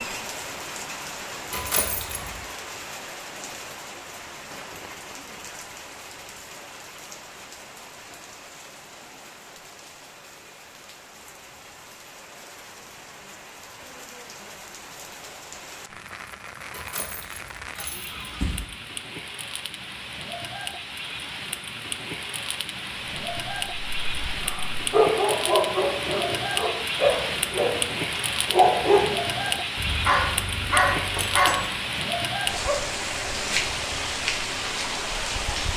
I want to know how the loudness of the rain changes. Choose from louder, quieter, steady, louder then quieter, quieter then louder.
quieter then louder.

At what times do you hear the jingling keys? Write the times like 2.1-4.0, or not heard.
1.5-2.4, 16.7-18.7, 31.0-31.8.